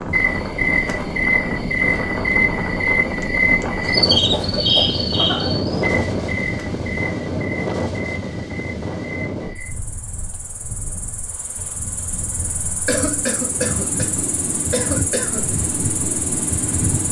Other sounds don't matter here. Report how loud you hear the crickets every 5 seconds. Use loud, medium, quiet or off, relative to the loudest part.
loud, medium, quiet, medium.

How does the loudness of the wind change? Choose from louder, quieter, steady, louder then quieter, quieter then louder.
quieter then louder.